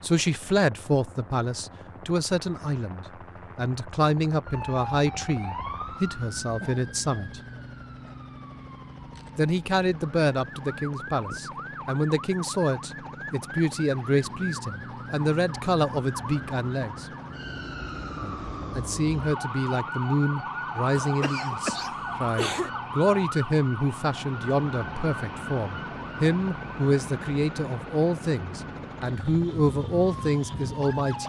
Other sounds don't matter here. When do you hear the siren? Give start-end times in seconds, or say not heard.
4.4-31.2.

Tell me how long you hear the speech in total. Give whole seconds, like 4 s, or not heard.
28 s.